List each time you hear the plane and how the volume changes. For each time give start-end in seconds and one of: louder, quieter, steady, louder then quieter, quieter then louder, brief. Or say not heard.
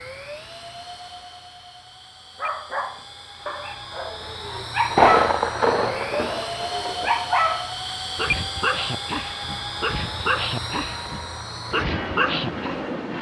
0.0-13.1 louder.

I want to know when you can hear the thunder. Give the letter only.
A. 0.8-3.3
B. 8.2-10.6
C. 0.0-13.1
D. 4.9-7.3
D.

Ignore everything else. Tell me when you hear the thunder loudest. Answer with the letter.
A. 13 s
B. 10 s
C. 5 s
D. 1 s
C.